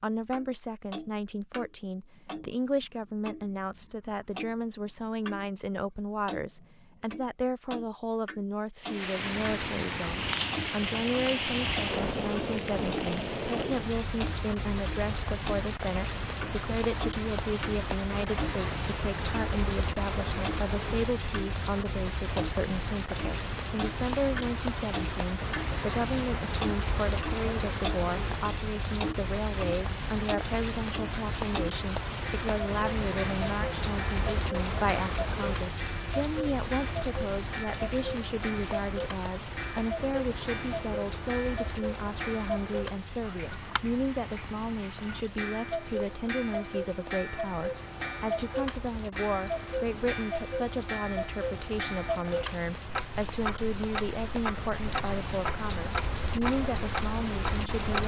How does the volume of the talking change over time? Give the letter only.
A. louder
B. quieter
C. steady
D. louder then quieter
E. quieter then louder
C.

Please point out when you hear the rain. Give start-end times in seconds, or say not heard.
8.8-58.0.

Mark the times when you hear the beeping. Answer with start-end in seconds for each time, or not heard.
not heard.